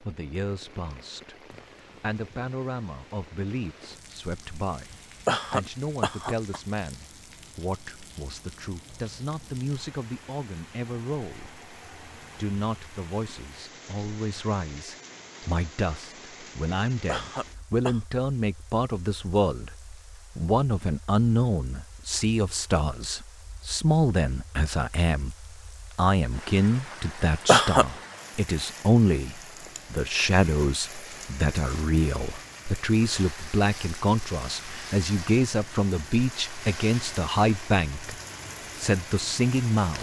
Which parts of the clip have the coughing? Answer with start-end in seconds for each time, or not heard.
5.2-6.6, 17.1-18.0, 27.4-27.9.